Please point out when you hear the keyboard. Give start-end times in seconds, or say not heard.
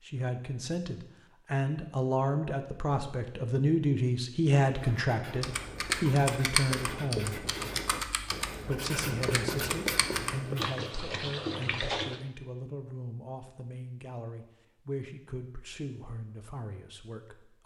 5.4-12.2.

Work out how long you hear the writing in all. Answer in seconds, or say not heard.
6 s.